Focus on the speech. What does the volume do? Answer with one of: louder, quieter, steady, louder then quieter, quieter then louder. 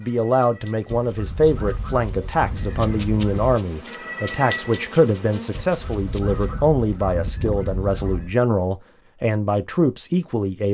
steady.